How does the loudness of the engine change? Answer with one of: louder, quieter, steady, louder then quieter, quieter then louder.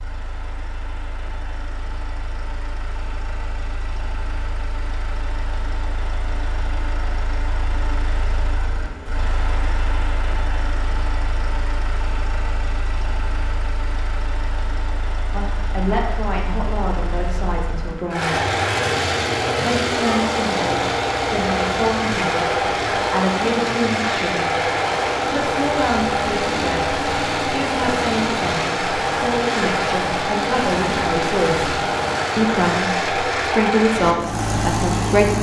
louder.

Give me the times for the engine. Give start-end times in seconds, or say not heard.
0.0-35.3.